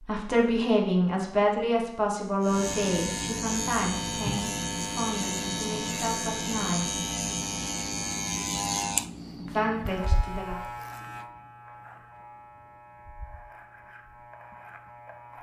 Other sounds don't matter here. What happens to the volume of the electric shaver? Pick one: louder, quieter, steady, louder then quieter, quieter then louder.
quieter.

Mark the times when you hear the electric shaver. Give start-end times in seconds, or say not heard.
2.4-15.3.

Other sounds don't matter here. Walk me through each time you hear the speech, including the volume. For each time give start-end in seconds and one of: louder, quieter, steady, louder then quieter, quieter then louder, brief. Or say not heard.
0.0-7.0 quieter
9.3-10.6 brief.